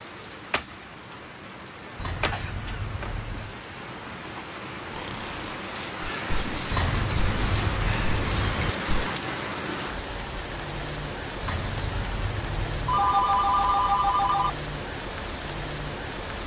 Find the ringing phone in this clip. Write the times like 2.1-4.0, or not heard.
12.8-14.5.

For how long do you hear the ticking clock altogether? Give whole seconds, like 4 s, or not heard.
not heard.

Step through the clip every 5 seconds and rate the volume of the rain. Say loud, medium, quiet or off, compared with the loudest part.
medium, loud, loud, loud.